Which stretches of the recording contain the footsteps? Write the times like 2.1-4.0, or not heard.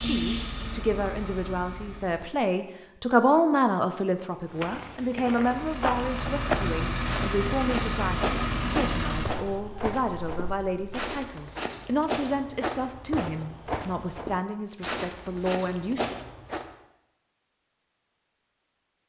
4.5-16.6.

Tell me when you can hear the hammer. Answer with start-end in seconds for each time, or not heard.
not heard.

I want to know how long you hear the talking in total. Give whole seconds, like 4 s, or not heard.
16 s.